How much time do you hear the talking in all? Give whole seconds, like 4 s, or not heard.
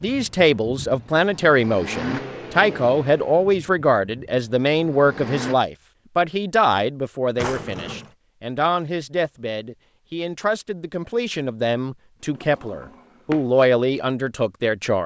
15 s.